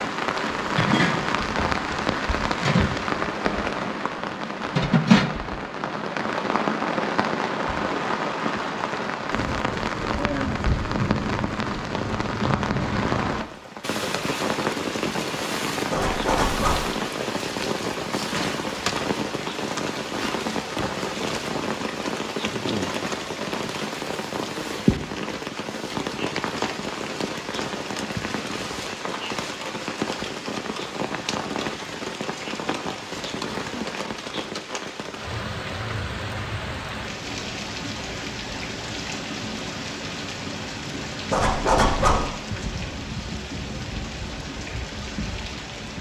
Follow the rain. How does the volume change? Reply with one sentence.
The loudness of the rain goes down.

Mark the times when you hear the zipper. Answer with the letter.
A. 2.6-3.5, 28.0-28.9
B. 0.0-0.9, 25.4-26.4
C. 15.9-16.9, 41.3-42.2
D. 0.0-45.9
C.